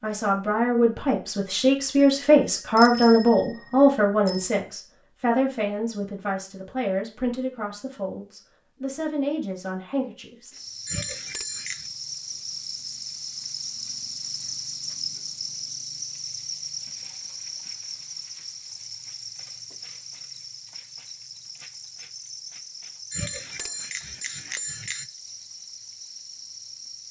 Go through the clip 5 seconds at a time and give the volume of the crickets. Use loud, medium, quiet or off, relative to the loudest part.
off, off, loud, loud, medium, medium.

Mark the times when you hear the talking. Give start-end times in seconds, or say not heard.
0.0-10.6.